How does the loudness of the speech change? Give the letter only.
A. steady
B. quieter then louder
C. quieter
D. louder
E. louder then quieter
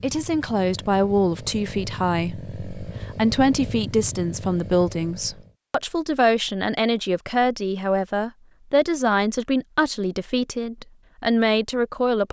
A.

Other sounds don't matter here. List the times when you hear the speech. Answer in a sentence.
You can hear the speech from 0.0 to 12.2 s.